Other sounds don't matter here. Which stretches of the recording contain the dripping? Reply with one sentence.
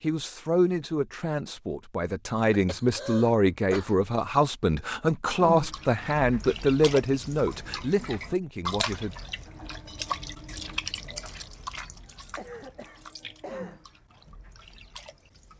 The dripping can be heard from 5.3 to 15.5 s.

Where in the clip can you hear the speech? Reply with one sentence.
The speech can be heard from 0.0 to 9.2 s.